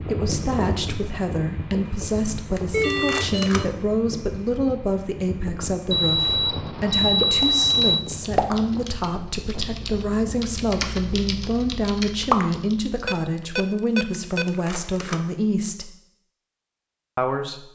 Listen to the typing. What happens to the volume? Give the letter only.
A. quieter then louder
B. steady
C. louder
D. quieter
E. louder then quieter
A.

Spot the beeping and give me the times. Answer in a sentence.
You can hear the beeping from 2.7 to 3.6 s, from 5.9 to 8.1 s and from 13.1 to 14.4 s.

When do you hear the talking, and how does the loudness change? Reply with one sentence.
The talking can be heard from 0.1 to 15.9 s, at a steady volume; and briefly from 17.1 to 17.7 s.